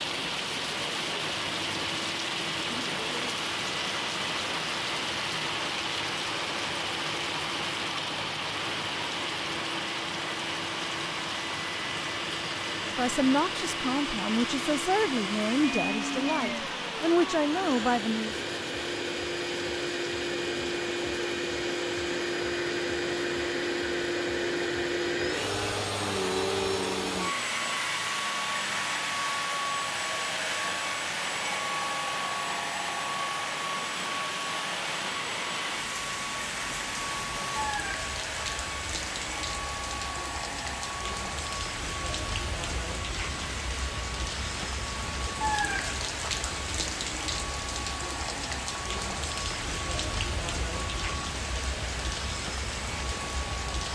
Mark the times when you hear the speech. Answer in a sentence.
The speech can be heard from 12.8 to 18.4 s.